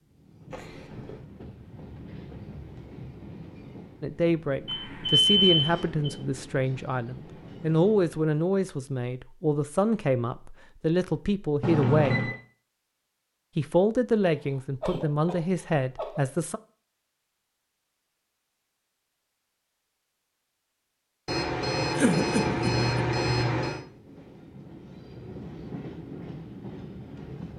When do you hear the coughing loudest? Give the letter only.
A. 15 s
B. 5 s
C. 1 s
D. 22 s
D.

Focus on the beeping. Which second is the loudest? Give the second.
5 s.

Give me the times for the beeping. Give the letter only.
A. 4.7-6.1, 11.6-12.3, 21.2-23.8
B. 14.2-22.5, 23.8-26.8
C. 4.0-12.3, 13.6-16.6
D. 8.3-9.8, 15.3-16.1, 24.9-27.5
A.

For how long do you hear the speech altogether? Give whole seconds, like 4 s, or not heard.
11 s.